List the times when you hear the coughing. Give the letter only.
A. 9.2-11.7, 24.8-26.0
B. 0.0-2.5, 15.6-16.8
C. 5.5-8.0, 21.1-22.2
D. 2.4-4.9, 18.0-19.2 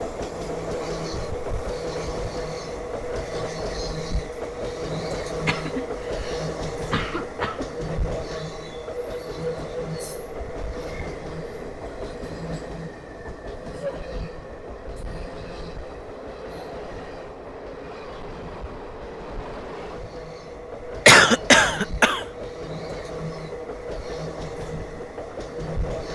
C.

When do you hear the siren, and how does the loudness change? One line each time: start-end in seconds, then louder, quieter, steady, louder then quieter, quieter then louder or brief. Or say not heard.
not heard.